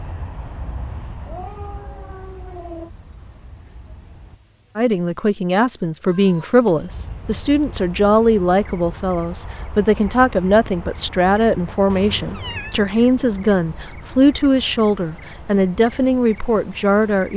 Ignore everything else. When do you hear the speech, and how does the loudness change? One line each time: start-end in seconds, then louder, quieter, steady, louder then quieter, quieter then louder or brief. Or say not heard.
4.8-17.3 steady.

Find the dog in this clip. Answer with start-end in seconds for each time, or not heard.
not heard.